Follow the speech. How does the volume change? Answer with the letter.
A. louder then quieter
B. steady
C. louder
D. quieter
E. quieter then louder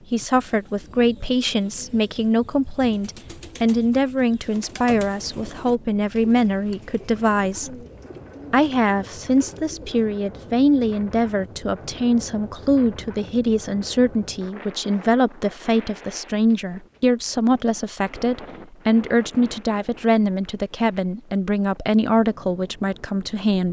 B.